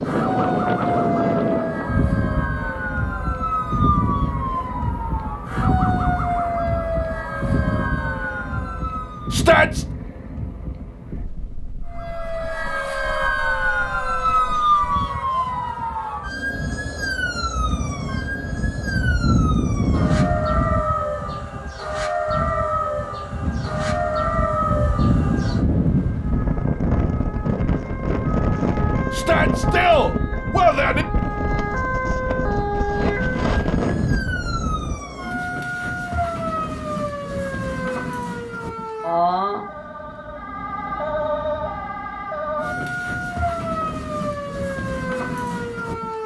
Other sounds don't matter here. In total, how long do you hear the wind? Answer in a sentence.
You can hear the wind for 35 seconds altogether.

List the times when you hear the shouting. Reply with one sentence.
The shouting can be heard from 9.3 to 9.8 s and from 29.1 to 31.1 s.